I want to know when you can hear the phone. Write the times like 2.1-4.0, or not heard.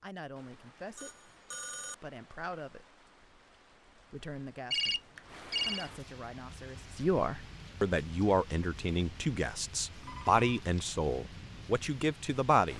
0.9-1.9, 4.7-5.9, 10.0-10.7.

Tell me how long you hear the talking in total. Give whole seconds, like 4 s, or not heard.
11 s.